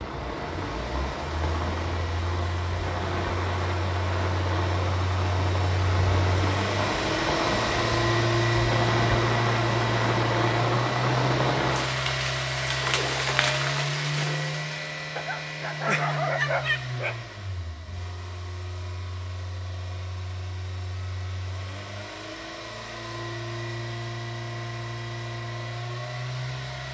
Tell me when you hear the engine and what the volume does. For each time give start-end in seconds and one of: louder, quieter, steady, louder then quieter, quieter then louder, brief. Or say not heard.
0.0-26.8 louder then quieter.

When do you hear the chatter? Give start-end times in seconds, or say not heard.
not heard.